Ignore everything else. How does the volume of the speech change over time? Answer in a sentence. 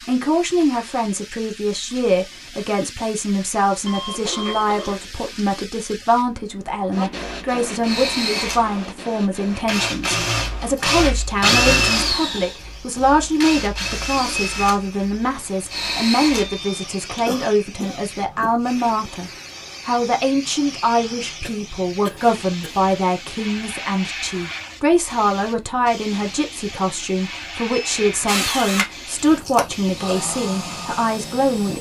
The volume of the speech stays about the same.